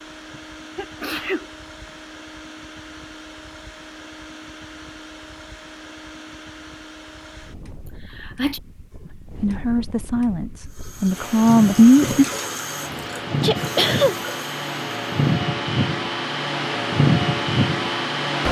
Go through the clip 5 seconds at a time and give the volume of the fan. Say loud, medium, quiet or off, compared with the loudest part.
quiet, quiet, medium, loud.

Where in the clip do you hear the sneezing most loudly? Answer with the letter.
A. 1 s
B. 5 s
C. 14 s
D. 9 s
C.